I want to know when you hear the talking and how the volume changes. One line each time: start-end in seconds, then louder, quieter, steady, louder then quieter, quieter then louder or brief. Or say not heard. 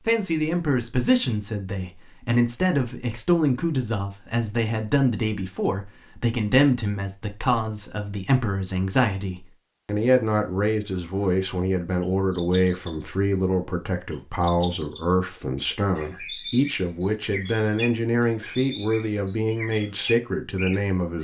0.0-21.1 steady.